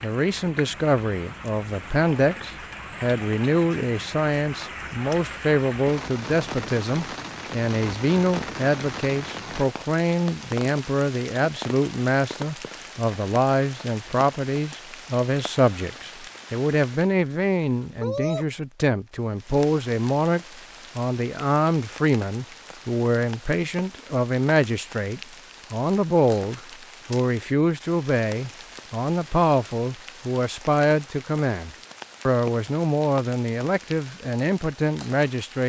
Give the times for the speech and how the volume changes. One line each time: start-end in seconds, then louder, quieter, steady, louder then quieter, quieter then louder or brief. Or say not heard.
0.0-35.6 steady.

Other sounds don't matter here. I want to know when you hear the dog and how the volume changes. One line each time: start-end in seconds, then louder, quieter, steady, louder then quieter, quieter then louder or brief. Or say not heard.
not heard.